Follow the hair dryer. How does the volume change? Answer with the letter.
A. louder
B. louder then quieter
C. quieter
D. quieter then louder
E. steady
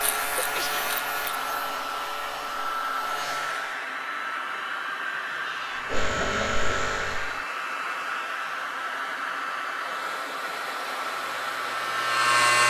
E.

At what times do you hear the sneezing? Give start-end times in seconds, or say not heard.
0.3-0.9.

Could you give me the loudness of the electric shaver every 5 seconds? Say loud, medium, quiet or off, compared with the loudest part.
medium, medium, loud.